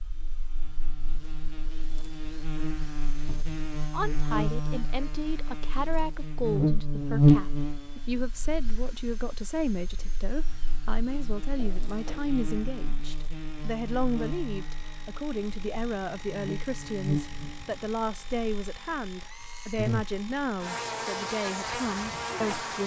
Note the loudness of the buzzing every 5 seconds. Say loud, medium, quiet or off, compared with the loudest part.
medium, loud, quiet, medium, medium.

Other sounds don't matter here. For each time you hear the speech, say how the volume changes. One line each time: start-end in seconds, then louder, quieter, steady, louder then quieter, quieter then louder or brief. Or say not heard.
3.9-22.8 steady.